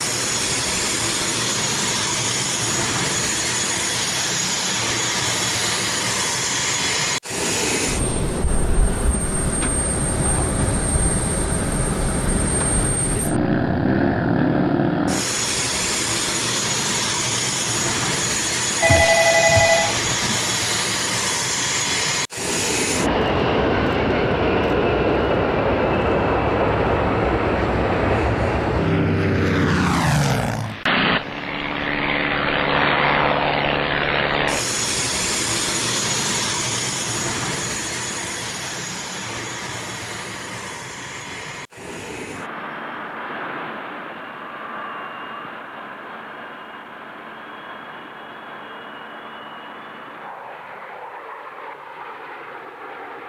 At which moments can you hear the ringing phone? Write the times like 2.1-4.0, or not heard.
18.8-20.4.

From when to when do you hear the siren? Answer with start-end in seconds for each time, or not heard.
not heard.